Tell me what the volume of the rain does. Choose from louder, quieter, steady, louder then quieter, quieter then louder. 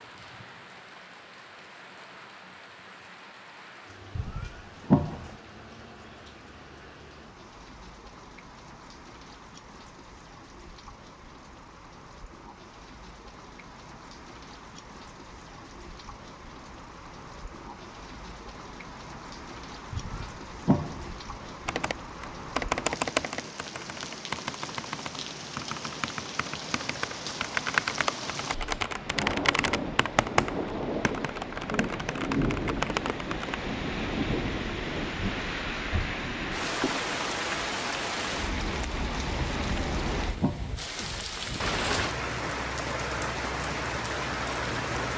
louder.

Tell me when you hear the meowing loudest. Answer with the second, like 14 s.
5 s.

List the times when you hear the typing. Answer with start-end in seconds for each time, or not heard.
21.6-33.6.